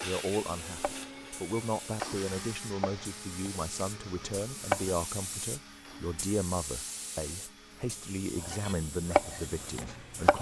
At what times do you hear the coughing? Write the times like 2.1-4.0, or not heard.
not heard.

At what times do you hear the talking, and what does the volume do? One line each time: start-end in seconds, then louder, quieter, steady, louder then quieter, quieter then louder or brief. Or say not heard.
0.0-10.3 steady.